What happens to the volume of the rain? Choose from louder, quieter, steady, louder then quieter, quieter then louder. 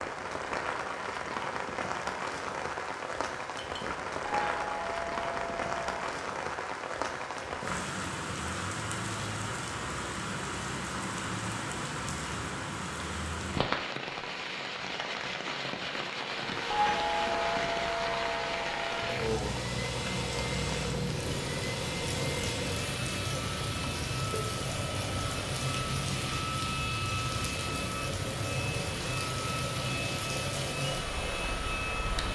steady.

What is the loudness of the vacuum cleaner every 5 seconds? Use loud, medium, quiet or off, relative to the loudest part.
off, off, off, loud, loud, loud, loud.